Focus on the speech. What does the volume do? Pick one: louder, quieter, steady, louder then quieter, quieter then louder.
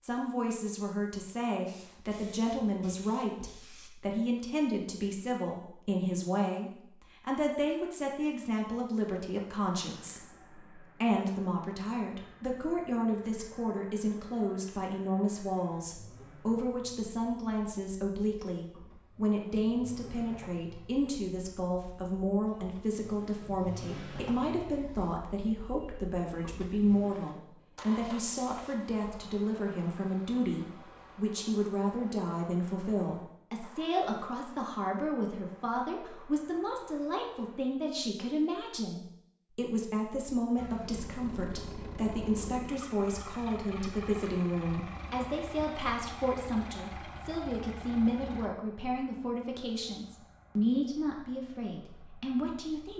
steady.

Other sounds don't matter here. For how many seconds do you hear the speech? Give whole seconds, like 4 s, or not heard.
53 s.